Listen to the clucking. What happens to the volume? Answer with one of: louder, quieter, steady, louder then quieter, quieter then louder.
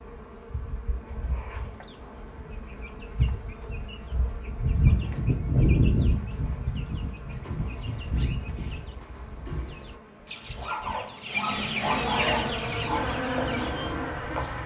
louder.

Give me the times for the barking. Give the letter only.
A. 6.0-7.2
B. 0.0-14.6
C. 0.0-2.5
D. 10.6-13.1
D.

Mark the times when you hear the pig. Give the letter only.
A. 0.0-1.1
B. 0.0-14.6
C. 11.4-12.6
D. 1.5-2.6
C.